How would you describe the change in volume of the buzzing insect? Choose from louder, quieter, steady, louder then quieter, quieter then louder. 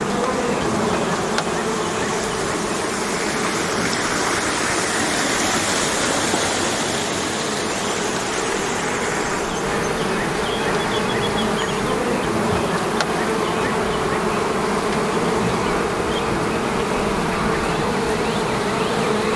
quieter then louder.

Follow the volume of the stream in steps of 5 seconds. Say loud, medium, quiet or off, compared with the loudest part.
loud, loud, medium, medium.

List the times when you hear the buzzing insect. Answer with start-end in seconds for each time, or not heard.
0.0-19.3.